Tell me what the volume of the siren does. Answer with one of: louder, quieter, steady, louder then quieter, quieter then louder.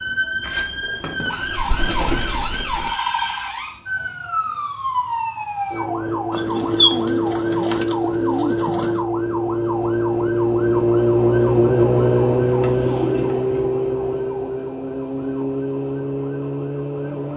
louder then quieter.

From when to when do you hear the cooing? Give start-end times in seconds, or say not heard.
0.4-3.0, 6.3-9.0, 12.4-13.8.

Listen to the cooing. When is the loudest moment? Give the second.
7 s.